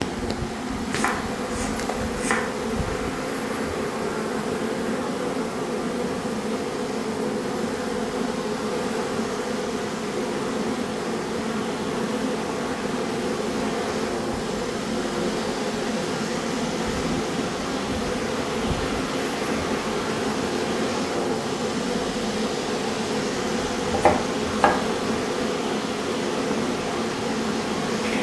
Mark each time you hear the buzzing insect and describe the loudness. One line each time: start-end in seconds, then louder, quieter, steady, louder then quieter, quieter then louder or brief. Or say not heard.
0.0-28.1 steady.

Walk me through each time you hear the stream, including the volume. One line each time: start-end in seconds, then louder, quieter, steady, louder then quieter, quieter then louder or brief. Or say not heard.
0.0-28.1 louder.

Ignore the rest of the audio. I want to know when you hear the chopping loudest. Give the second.
24 s.